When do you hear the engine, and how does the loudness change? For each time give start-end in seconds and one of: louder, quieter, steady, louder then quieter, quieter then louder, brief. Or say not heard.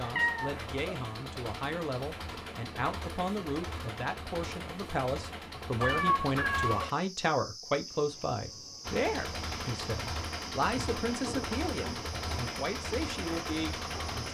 0.0-7.0 steady
8.8-14.2 steady.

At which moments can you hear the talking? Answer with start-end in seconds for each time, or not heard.
0.0-14.2.